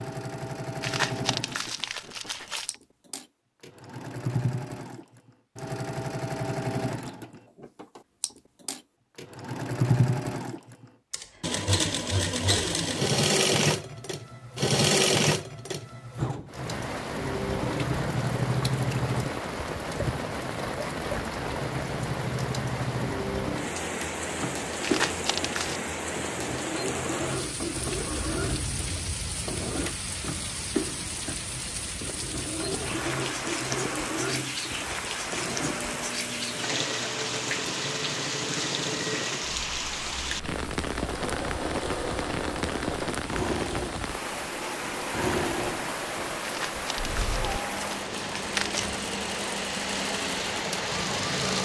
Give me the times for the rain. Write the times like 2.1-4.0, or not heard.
16.4-51.6.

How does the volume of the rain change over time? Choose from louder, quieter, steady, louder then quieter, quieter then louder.
steady.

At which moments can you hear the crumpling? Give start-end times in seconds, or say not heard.
0.8-2.8, 24.8-25.8, 46.4-49.0.